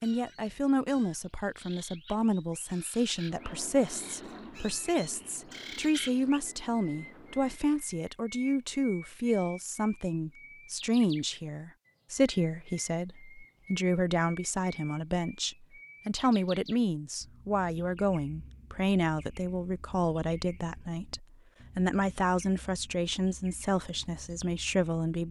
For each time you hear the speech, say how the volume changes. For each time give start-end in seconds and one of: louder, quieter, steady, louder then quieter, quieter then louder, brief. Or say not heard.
0.0-25.2 steady.